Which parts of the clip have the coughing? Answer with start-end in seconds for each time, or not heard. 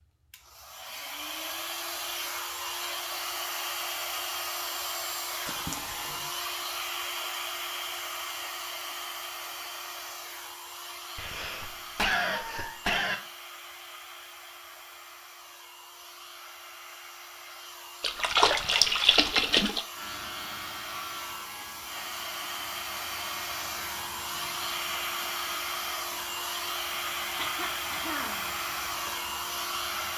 5.5-6.2, 11.2-13.2, 27.4-28.5.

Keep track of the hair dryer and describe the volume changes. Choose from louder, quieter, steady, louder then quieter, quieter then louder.
quieter then louder.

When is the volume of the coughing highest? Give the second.
12 s.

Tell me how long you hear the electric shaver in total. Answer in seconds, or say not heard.
10 s.